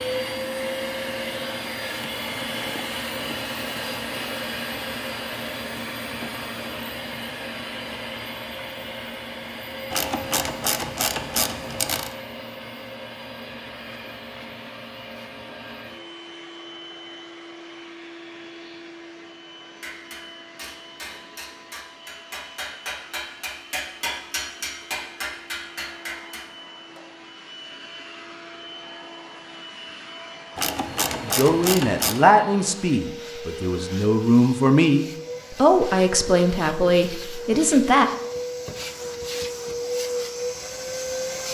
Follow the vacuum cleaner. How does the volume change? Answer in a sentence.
The volume of the vacuum cleaner goes down, then up.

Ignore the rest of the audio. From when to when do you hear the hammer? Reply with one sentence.
You can hear the hammer from 19.8 to 27.0 s.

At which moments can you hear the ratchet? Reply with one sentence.
The ratchet can be heard from 9.9 to 12.1 s and from 30.6 to 32.2 s.